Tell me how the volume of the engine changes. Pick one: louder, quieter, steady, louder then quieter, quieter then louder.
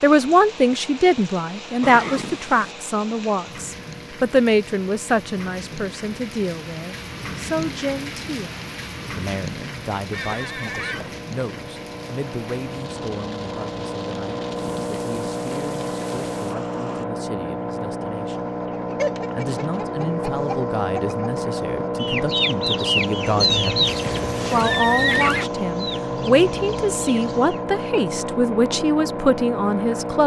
louder.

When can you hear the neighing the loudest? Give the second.
25 s.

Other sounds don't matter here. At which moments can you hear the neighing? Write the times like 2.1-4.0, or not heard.
1.8-2.8, 10.1-11.1, 23.9-25.5.